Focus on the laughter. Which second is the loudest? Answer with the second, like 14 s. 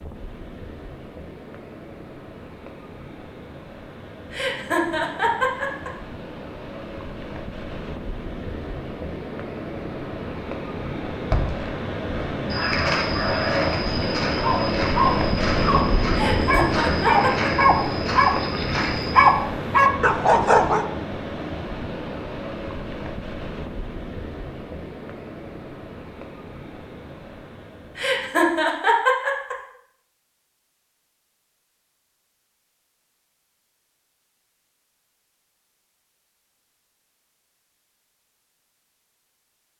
29 s.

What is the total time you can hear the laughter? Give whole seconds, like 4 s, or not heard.
5 s.